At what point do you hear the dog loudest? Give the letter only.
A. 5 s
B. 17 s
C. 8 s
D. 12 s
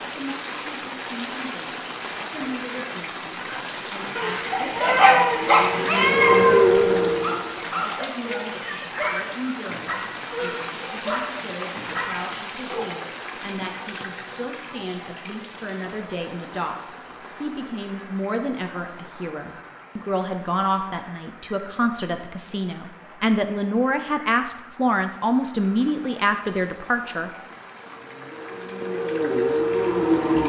A.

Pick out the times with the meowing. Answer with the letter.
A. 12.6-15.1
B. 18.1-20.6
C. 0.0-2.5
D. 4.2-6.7
D.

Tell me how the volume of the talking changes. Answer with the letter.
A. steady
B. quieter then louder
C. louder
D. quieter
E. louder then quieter
C.